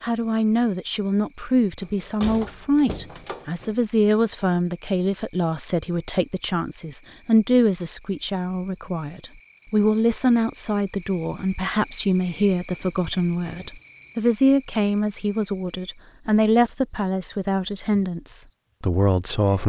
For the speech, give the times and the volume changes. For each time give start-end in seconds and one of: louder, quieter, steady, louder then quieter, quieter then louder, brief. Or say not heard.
0.0-19.6 steady.